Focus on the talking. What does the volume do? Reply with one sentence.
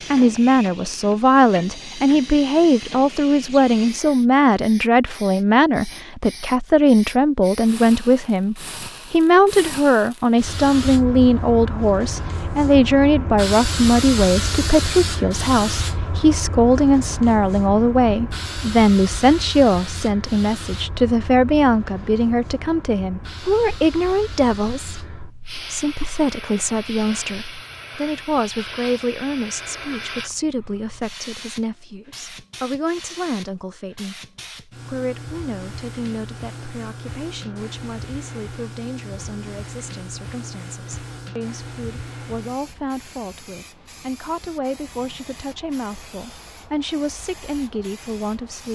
The loudness of the talking goes down.